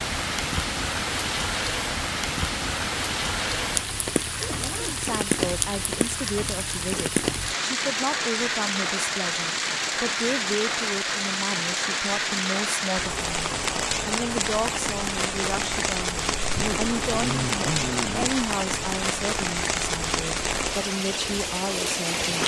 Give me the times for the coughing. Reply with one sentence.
You can't hear the coughing here.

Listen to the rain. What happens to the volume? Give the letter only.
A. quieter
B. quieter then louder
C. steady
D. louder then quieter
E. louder
C.